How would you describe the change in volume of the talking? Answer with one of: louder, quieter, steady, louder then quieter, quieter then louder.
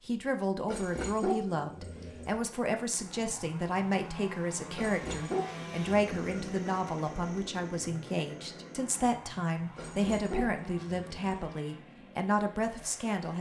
steady.